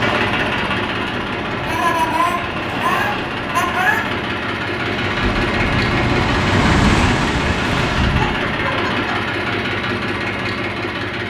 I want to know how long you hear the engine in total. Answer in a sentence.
The engine can be heard for 11 seconds in total.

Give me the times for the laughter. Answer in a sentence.
You can hear the laughter from 1.6 to 4.2 s and from 8.1 to 9.2 s.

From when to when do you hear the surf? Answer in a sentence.
The surf can be heard from 0.0 to 9.1 s.